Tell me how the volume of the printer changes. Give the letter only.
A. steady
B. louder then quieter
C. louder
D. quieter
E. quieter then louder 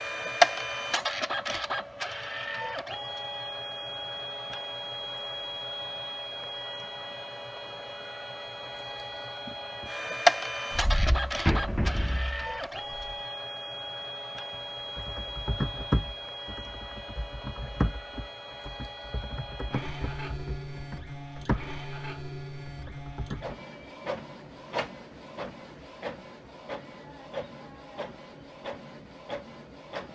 D.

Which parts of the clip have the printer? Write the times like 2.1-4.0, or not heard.
0.0-30.1.